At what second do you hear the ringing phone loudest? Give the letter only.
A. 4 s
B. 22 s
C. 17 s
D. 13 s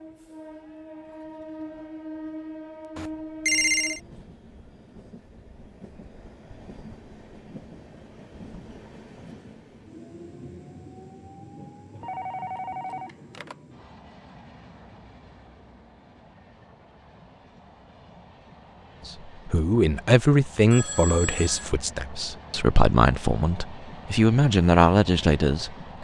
A.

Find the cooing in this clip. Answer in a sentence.
You can't hear the cooing here.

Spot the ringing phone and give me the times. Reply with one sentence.
The ringing phone can be heard from 3.0 to 4.0 s, from 12.0 to 13.6 s and from 20.7 to 21.7 s.